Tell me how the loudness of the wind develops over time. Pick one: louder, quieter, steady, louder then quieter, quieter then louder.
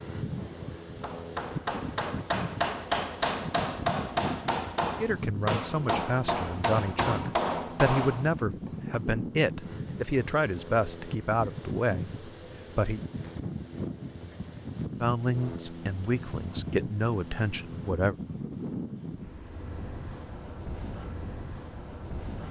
steady.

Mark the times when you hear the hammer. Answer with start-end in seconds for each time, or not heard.
0.4-9.0.